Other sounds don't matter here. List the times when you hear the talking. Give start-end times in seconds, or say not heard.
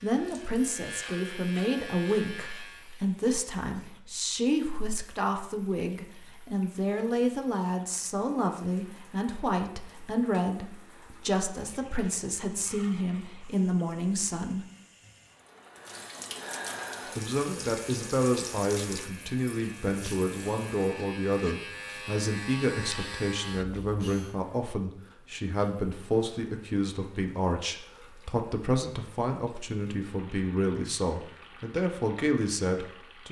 0.0-14.7, 17.1-33.2.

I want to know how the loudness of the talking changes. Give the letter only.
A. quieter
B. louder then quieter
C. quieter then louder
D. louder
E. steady
E.